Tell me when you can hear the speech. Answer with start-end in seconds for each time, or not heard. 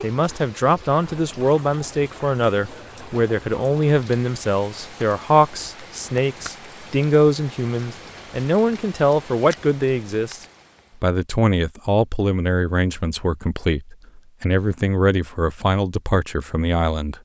0.0-10.4, 11.0-17.1.